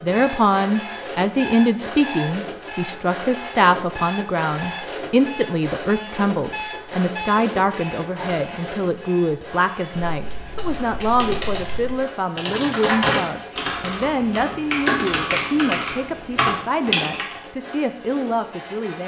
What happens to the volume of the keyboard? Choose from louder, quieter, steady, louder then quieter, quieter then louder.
louder.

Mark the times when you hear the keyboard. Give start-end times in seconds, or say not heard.
9.9-17.4.